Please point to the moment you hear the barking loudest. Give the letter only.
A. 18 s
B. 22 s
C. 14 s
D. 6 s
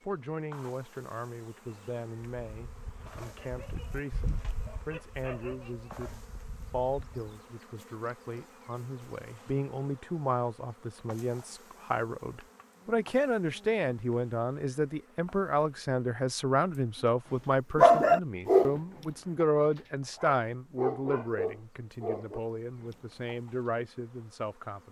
A.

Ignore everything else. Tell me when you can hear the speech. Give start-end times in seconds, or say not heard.
0.0-24.8.